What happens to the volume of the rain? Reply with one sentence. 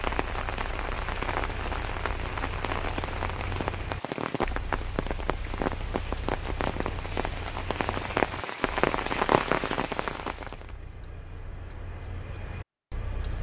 The volume of the rain goes up.